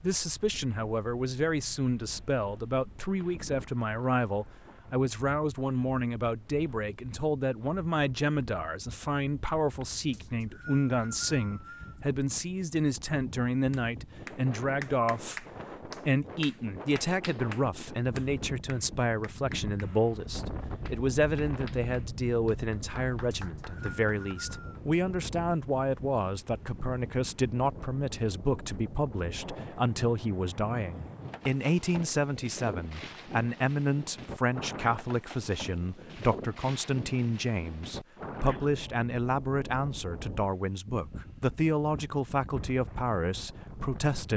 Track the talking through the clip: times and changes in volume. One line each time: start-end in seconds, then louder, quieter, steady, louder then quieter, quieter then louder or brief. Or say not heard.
0.0-44.3 steady.